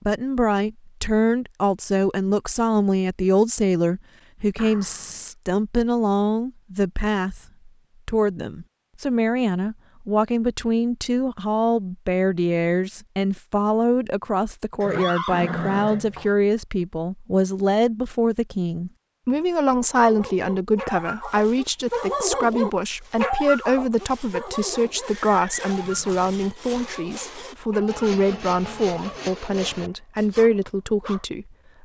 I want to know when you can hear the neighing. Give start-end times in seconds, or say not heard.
4.5-5.3, 14.8-16.3, 24.9-26.4.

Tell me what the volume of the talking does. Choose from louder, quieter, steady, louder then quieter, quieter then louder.
steady.